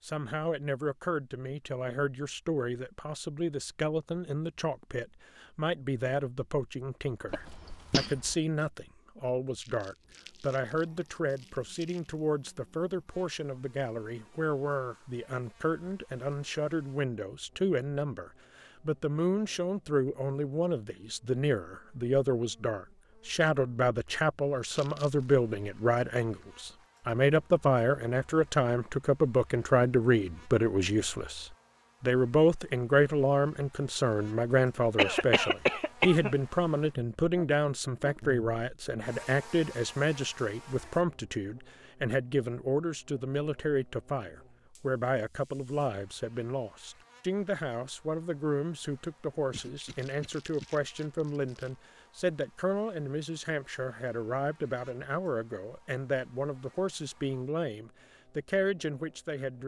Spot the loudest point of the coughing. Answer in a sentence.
The loudest moment of the coughing is at 35 seconds.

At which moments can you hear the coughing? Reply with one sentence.
You can hear the coughing from 7.3 to 8.3 s, from 35.0 to 36.4 s and from 49.5 to 50.6 s.